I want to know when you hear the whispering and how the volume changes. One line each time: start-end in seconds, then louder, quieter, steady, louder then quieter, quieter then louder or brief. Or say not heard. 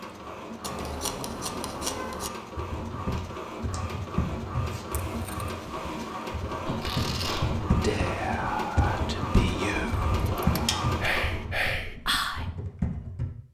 6.7-12.4 quieter then louder.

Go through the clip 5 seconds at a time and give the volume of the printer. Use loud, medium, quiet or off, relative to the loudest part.
medium, loud, loud.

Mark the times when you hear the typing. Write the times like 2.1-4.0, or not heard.
2.5-13.3.